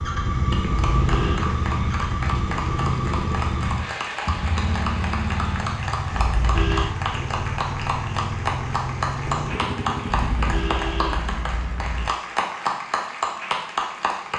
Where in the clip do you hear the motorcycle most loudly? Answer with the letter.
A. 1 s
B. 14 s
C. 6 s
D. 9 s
A.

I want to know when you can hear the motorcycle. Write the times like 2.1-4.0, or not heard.
0.0-10.7.